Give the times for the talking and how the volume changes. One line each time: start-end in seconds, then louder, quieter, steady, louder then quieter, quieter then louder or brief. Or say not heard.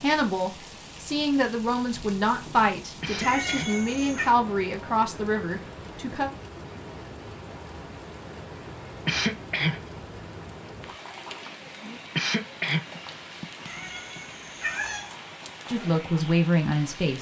0.0-6.3 steady
15.7-17.1 brief.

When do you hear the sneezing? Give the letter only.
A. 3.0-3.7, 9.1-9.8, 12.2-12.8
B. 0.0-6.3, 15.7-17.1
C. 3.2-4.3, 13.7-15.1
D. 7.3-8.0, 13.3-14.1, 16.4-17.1
A.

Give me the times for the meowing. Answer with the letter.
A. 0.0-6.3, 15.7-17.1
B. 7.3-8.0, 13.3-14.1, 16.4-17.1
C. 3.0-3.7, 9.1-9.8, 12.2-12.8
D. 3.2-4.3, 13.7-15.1
D.